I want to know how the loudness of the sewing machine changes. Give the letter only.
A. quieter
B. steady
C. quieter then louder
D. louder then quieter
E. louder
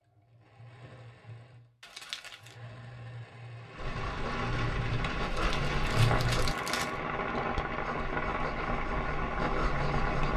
E.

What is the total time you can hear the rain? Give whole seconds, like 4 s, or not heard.
7 s.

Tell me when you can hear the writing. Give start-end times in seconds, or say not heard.
3.9-10.3.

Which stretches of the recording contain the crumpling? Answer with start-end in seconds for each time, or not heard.
1.8-2.5, 5.3-7.0.